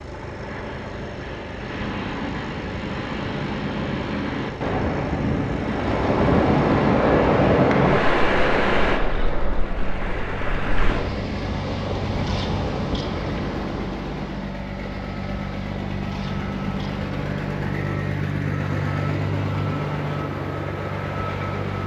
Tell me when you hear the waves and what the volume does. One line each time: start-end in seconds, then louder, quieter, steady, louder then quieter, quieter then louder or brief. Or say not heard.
0.0-21.8 louder then quieter.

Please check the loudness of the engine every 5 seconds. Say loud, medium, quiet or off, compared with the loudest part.
medium, medium, medium, loud, loud.